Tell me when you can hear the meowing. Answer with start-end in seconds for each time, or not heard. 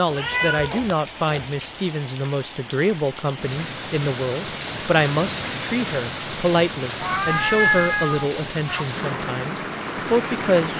0.1-1.6, 7.0-8.8.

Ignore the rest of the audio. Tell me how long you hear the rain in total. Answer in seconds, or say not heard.
11 s.